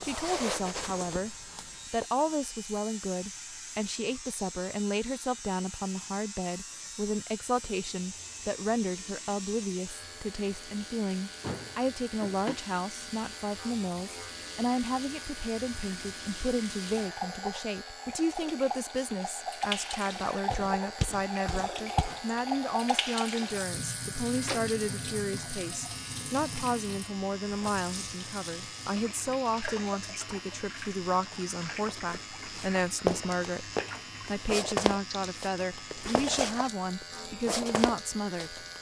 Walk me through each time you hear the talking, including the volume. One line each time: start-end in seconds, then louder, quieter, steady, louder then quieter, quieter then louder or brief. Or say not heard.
0.0-1.3 brief
1.9-38.6 steady.